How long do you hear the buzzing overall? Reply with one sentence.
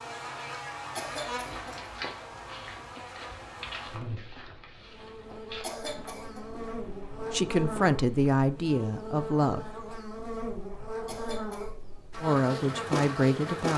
The buzzing can be heard for 14 seconds in total.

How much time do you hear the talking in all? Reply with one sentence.
You can hear the talking for 4 seconds altogether.